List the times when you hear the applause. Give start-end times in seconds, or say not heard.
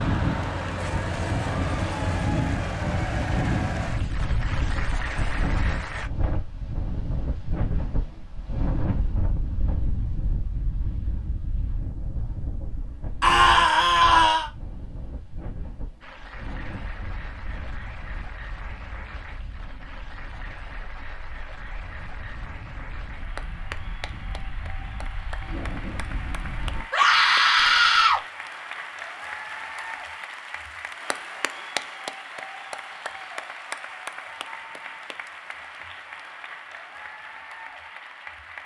0.0-6.1, 16.0-38.6.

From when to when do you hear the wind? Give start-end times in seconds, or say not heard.
0.0-26.9.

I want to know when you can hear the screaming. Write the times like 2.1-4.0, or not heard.
13.2-14.5, 26.9-28.2.